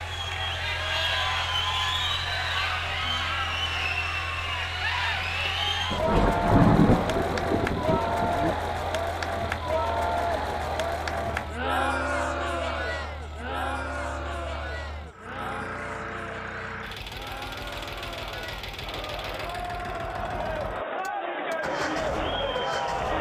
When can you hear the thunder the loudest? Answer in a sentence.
The loudest moment of the thunder is at 7 seconds.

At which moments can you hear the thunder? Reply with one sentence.
The thunder can be heard from 5.9 to 8.6 s.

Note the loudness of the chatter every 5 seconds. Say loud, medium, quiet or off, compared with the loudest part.
loud, loud, loud, medium, loud.